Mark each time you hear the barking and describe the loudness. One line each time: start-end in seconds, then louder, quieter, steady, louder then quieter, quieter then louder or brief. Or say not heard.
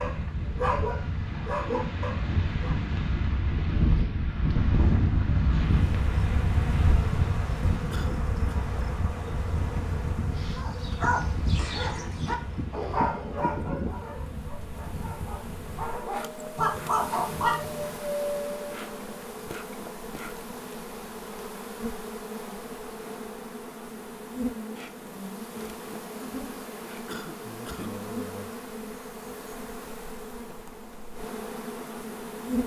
0.0-2.8 brief
10.6-17.9 quieter then louder.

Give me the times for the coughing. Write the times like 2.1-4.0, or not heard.
7.9-8.6, 27.1-28.0.